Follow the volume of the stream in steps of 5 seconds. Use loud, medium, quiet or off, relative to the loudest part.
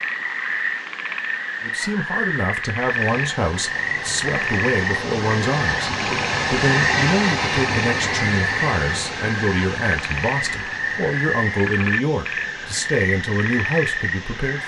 medium, loud, quiet.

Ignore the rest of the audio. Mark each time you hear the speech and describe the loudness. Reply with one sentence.
The speech can be heard from 1.6 to 14.6 s, at a steady volume.